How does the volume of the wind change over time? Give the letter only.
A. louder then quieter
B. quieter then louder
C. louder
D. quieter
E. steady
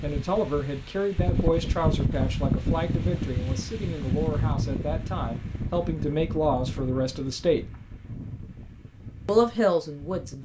D.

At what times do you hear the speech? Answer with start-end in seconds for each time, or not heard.
0.0-7.7, 9.2-10.4.